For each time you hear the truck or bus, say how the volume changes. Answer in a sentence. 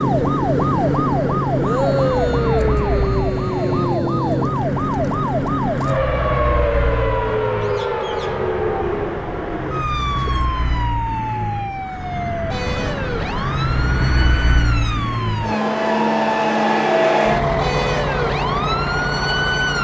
You can hear the truck or bus from 0.0 to 19.7 s, getting louder.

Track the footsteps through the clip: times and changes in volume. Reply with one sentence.
You can't hear the footsteps here.